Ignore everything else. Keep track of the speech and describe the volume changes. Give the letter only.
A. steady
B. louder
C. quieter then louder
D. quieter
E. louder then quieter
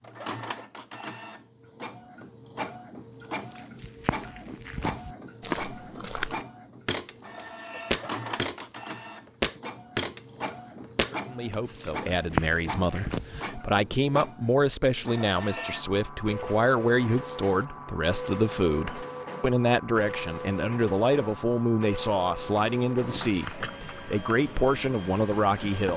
A.